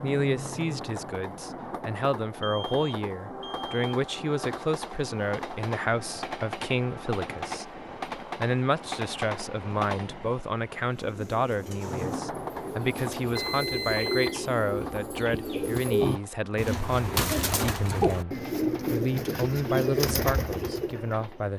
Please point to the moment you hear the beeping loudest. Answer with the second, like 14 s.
14 s.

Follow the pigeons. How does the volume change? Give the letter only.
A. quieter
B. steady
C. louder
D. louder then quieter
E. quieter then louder
C.